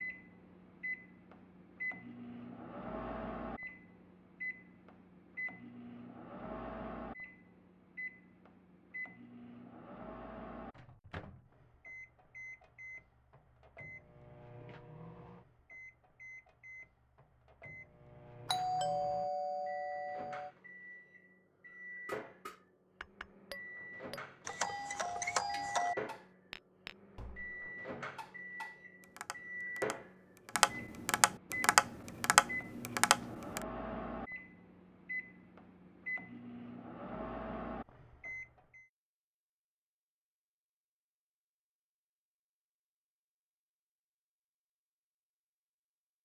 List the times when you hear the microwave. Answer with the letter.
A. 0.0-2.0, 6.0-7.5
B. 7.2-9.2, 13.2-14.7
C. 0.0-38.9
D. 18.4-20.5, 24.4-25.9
C.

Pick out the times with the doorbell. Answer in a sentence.
The doorbell can be heard from 18.4 to 20.5 s and from 24.4 to 25.9 s.